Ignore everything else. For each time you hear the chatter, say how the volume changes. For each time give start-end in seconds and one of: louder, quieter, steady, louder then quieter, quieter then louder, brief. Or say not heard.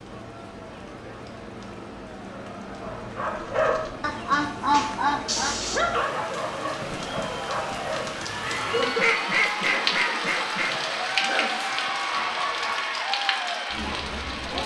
0.0-14.6 louder.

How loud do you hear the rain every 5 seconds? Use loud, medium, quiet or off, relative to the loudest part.
medium, loud, loud.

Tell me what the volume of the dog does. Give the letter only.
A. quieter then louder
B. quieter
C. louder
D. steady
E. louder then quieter
B.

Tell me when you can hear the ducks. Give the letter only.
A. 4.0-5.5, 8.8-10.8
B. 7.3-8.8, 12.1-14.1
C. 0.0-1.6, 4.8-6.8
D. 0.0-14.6
A.